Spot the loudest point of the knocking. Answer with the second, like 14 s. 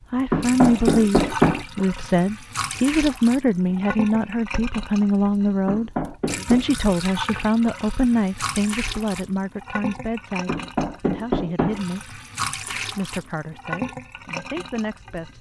1 s.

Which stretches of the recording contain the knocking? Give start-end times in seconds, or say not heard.
0.3-1.6, 5.7-6.7, 10.4-11.8.